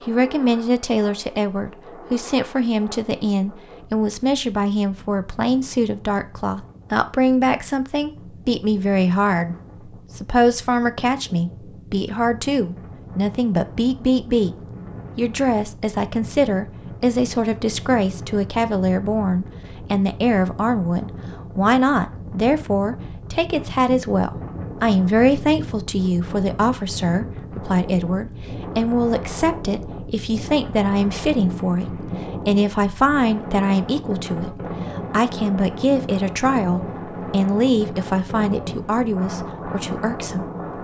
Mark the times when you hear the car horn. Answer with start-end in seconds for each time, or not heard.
not heard.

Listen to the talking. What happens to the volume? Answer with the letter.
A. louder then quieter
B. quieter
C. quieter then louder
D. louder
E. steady
E.